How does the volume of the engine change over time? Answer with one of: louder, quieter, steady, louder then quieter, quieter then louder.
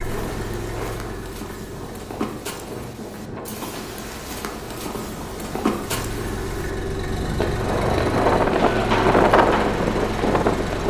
quieter then louder.